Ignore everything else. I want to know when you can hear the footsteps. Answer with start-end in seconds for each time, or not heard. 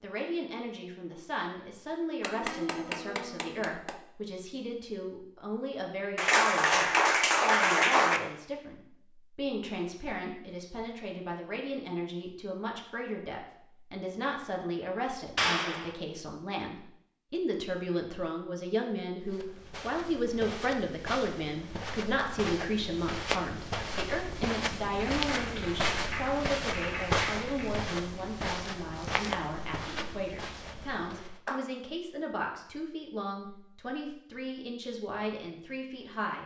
19.2-31.4.